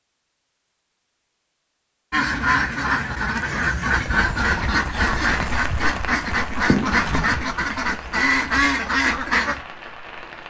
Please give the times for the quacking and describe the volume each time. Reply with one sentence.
The quacking can be heard from 2.1 to 9.6 s, at a steady volume.